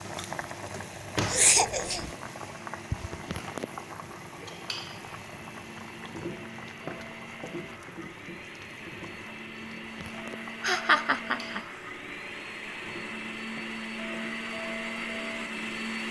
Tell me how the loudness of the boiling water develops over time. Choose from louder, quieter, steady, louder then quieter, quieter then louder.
quieter.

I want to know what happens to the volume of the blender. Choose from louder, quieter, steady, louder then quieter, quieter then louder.
louder.